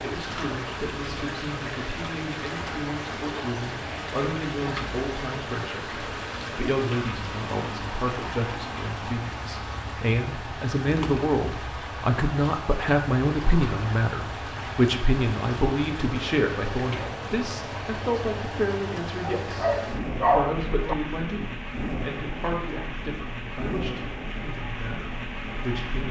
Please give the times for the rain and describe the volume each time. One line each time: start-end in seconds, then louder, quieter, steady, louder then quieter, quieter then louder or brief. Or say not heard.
0.0-26.0 steady.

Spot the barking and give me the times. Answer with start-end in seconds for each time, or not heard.
19.2-20.9.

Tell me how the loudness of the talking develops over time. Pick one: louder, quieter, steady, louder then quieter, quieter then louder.
louder then quieter.